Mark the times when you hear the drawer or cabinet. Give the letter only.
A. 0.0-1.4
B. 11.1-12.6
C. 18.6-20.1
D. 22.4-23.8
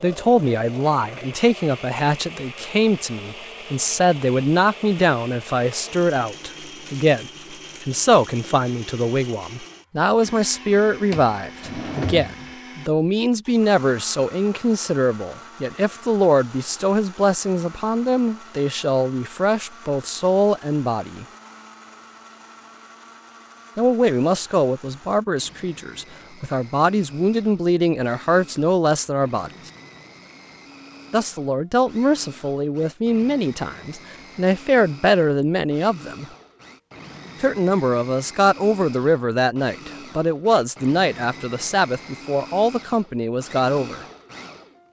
B.